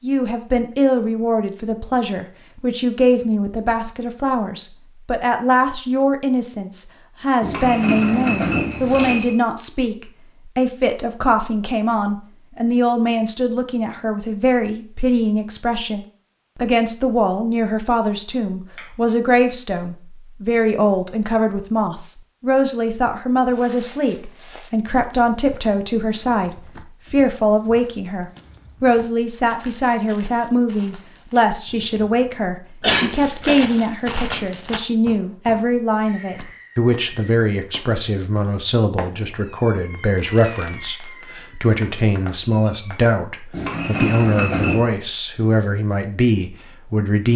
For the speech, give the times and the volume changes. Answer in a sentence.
The speech can be heard from 0.0 to 47.3 s, at a steady volume.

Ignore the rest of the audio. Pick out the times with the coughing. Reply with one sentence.
You can hear the coughing from 32.8 to 33.6 s.